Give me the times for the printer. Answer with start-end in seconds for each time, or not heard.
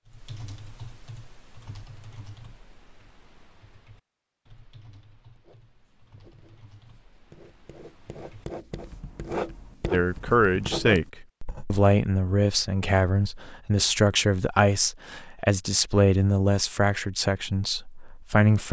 not heard.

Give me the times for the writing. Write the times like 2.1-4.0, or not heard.
5.3-11.8.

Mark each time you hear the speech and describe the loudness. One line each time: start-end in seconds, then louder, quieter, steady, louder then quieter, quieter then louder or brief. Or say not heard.
9.9-18.6 quieter.